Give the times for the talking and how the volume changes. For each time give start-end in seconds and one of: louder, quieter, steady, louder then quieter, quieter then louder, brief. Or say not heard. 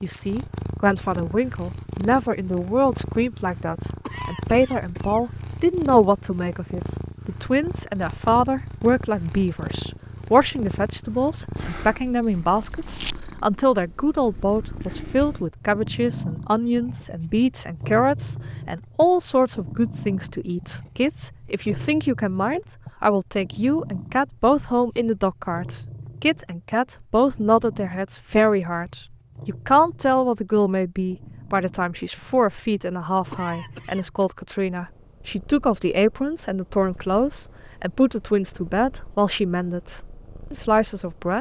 0.0-41.3 steady.